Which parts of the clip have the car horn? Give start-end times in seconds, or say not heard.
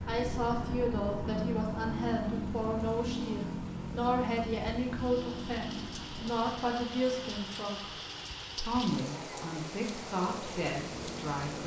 not heard.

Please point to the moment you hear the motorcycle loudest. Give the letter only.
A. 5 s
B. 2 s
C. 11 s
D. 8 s
B.